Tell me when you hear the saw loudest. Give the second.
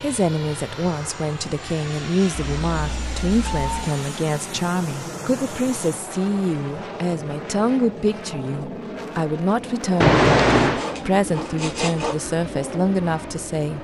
12 s.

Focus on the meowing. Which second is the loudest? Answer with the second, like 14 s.
10 s.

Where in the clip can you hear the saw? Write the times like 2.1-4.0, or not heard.
10.6-12.2.